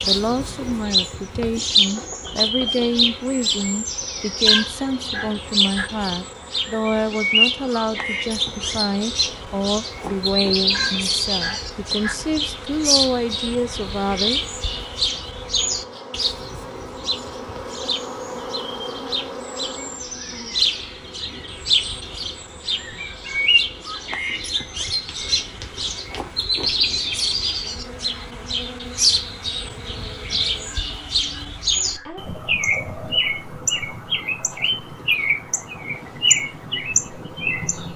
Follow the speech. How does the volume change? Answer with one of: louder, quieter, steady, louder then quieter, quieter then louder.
steady.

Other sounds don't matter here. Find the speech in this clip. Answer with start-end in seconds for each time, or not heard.
0.0-14.4.